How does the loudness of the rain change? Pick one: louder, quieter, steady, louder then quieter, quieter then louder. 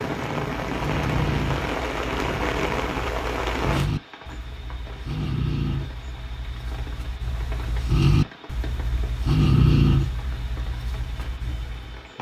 quieter.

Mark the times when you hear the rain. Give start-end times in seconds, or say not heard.
0.0-12.1.